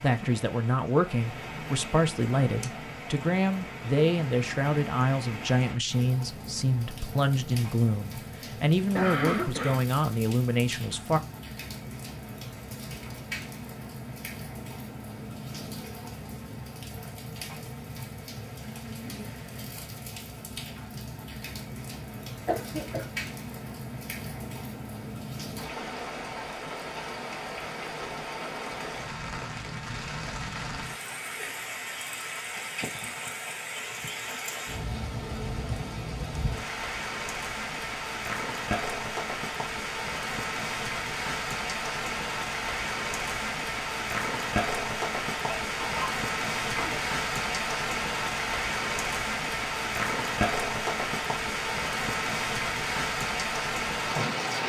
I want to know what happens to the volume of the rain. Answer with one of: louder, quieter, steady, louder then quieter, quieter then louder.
louder.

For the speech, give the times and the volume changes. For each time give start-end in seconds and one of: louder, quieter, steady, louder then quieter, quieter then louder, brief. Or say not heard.
0.0-11.2 steady.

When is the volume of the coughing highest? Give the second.
9 s.